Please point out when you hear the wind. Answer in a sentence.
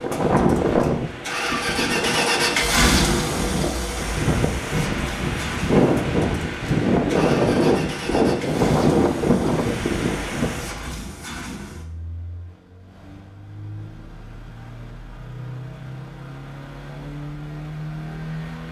The wind can be heard from 0.0 to 10.9 s.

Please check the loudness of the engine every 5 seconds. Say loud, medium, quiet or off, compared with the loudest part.
loud, medium, quiet, medium.